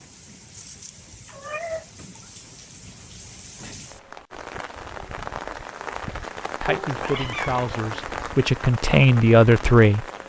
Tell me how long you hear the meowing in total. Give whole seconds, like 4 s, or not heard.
2 s.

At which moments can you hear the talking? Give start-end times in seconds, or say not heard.
6.6-10.1.